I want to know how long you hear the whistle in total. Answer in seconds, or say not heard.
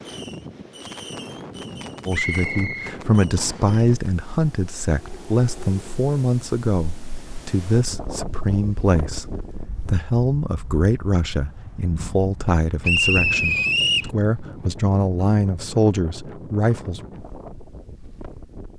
3 s.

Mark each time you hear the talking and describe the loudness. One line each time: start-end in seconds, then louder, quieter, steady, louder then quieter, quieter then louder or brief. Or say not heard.
2.0-17.1 steady.